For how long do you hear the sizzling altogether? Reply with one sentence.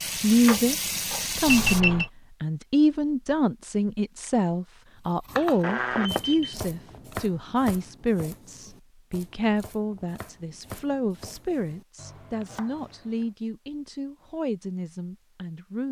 The sizzling can be heard for 2 seconds in total.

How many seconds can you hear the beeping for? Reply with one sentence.
You can hear the beeping for 3 seconds altogether.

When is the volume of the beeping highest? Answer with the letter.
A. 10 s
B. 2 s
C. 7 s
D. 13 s
B.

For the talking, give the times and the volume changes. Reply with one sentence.
You can hear the talking briefly from 0.2 to 0.8 s; and from 1.4 to 15.8 s, getting quieter.